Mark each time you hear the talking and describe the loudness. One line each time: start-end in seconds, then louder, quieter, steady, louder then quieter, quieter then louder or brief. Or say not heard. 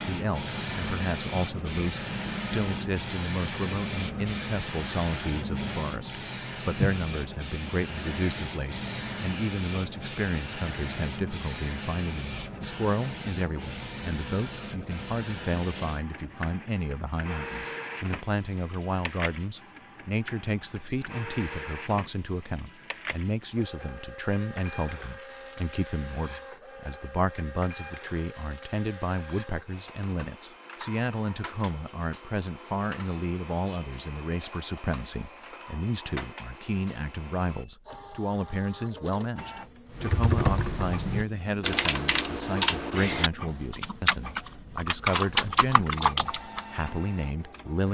0.1-47.8 steady.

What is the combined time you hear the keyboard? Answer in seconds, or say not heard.
7 s.